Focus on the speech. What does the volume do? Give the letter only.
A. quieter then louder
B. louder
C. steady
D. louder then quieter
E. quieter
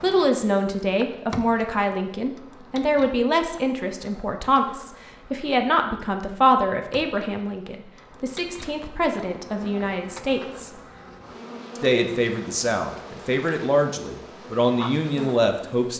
C.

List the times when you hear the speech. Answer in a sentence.
The speech can be heard from 0.0 to 10.7 s and from 11.8 to 15.9 s.